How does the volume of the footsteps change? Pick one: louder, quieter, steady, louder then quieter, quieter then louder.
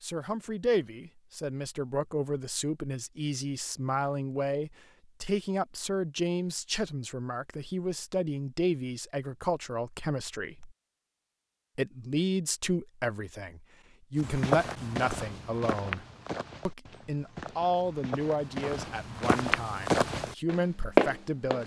quieter then louder.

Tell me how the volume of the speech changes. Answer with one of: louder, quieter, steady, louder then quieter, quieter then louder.
steady.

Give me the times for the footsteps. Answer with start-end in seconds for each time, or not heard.
14.2-21.6.